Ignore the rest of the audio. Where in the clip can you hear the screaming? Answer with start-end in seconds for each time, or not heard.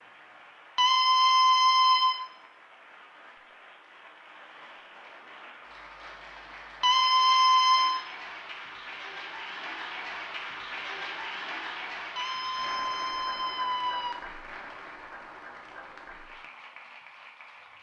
0.8-2.2, 6.8-8.0, 12.2-14.2.